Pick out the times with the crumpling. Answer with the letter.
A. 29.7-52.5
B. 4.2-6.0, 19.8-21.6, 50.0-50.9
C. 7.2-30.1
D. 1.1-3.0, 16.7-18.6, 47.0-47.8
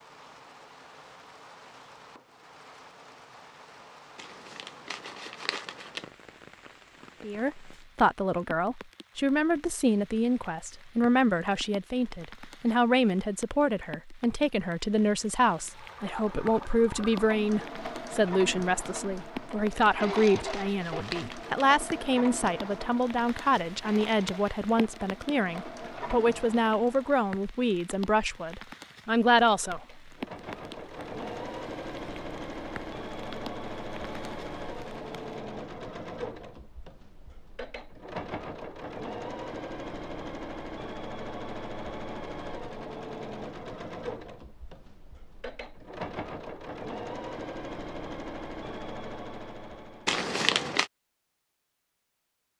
B.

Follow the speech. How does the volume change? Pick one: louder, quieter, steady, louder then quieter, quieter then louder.
steady.